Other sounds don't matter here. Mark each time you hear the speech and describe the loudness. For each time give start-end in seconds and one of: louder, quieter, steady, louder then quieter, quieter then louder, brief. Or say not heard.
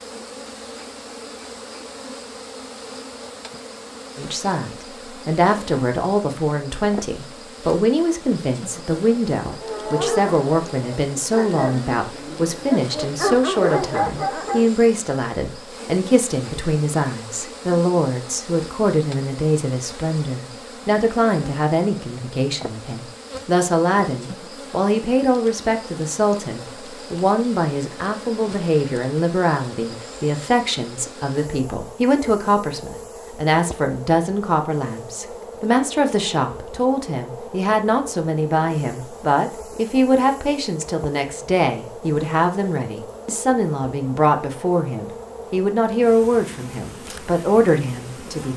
4.2-48.5 steady.